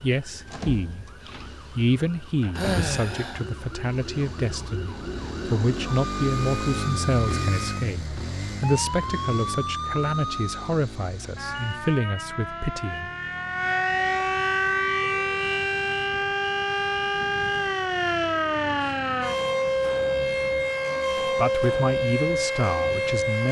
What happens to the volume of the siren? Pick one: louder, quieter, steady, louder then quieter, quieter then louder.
louder.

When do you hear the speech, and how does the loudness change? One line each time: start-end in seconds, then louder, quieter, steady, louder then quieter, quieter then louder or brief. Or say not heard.
0.0-1.1 brief
1.7-13.1 steady
21.2-23.4 brief.